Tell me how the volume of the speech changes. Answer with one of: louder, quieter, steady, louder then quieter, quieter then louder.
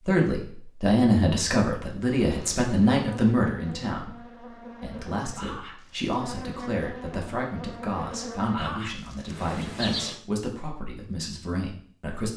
quieter.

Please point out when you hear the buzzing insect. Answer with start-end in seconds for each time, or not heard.
2.2-10.2.